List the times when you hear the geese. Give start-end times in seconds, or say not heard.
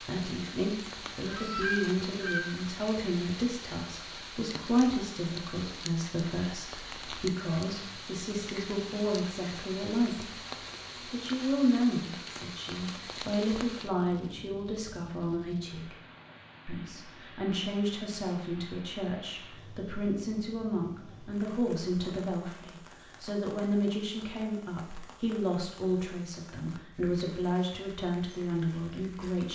1.2-2.4.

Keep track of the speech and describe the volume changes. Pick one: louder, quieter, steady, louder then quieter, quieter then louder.
steady.